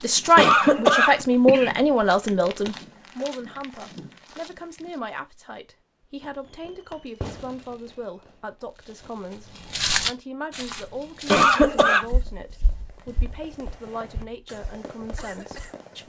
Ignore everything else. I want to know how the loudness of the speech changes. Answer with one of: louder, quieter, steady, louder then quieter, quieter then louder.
quieter.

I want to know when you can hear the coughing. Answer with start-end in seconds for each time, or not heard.
0.3-1.7, 11.2-12.1.